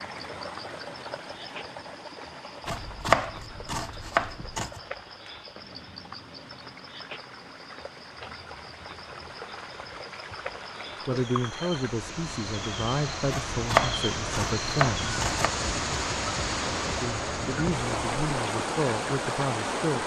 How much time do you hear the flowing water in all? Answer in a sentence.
You can hear the flowing water for 20 seconds altogether.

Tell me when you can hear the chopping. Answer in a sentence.
The chopping can be heard from 2.6 to 4.8 s and from 13.3 to 15.5 s.